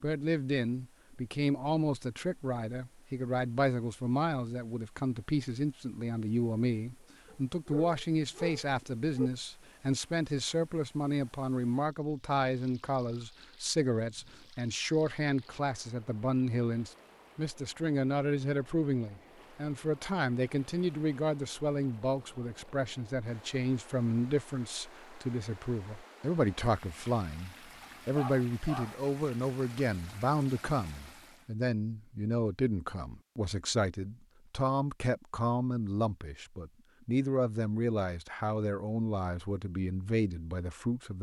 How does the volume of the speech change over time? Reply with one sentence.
The loudness of the speech stays about the same.